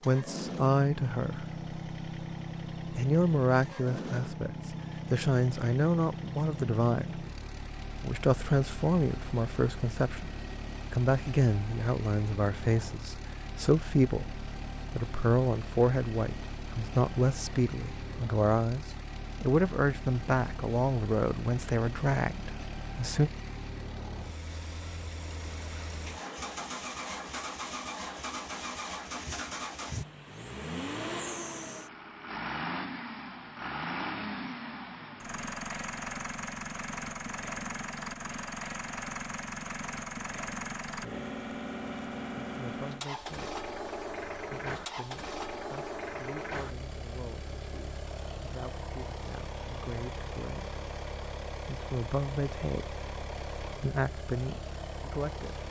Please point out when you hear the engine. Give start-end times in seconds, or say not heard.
0.0-55.6.